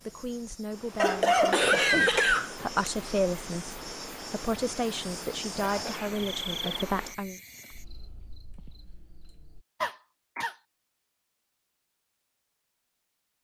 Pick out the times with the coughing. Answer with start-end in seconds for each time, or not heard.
0.9-2.9, 5.5-6.9, 9.8-10.6.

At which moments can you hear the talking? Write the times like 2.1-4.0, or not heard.
0.1-7.4.